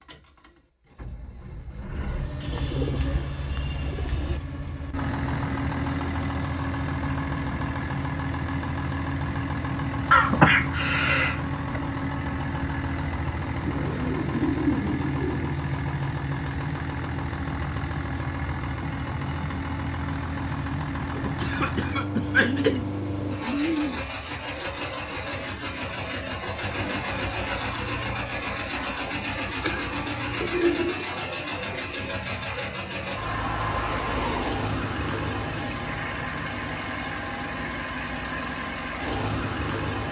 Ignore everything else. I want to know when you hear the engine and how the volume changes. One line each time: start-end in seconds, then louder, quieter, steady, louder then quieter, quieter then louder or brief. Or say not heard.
0.1-40.0 steady.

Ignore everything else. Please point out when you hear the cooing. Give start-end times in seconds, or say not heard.
2.4-4.4, 13.7-15.6, 22.4-24.2, 30.4-32.1.